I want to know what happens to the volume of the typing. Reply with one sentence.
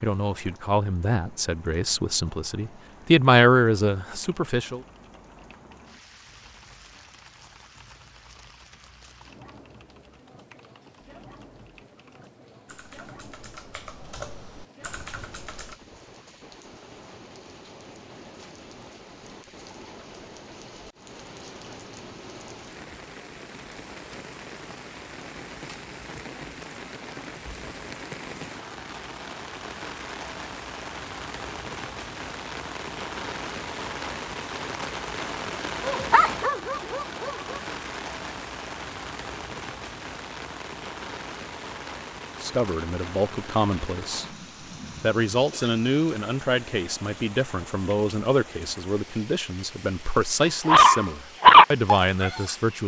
The volume of the typing goes up.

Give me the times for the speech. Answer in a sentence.
The speech can be heard from 0.0 to 4.8 s, from 42.4 to 44.2 s and from 45.0 to 52.8 s.